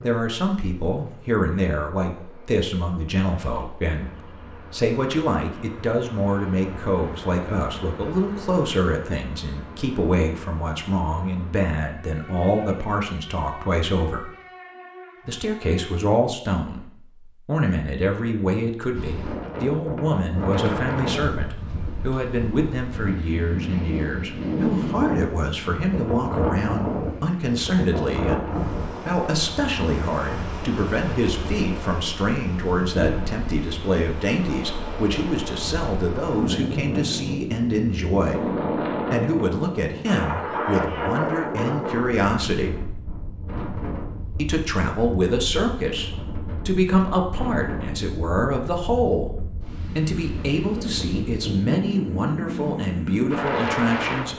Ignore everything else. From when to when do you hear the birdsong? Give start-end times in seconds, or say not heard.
not heard.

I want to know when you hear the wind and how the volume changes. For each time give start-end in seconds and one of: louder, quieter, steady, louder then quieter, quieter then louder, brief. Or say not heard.
18.9-54.3 steady.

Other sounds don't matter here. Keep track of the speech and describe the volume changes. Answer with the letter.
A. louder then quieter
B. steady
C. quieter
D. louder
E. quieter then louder
B.